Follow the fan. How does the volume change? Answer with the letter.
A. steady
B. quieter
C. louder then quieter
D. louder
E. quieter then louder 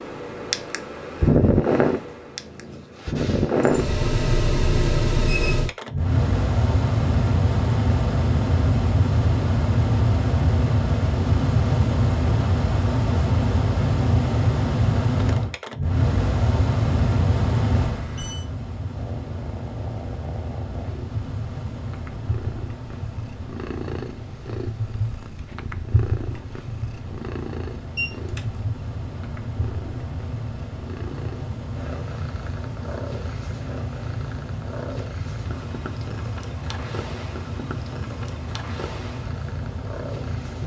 B.